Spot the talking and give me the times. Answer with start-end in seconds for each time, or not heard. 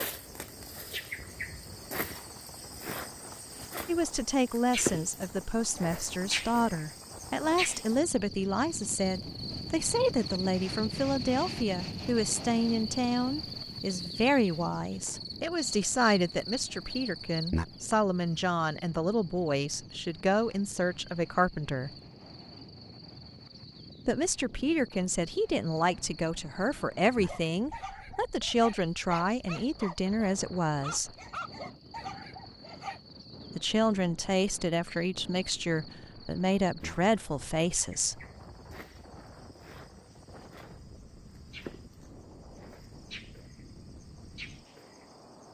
3.9-21.9, 24.1-31.1, 33.5-38.2.